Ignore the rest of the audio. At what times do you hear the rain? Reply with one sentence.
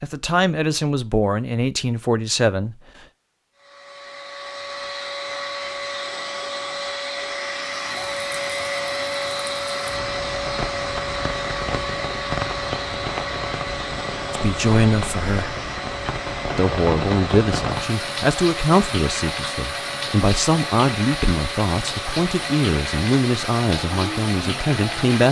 You can hear the rain from 7.6 to 25.2 s.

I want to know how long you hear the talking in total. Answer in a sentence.
The talking can be heard for 13 seconds in total.